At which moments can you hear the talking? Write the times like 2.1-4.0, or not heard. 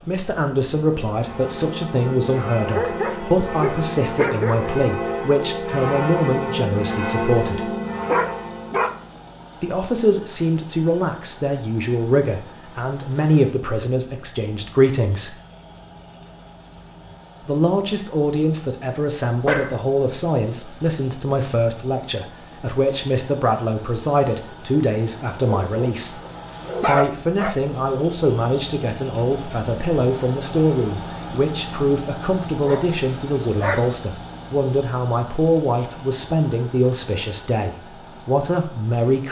0.1-7.7, 9.6-15.3, 17.4-26.2, 26.8-39.2.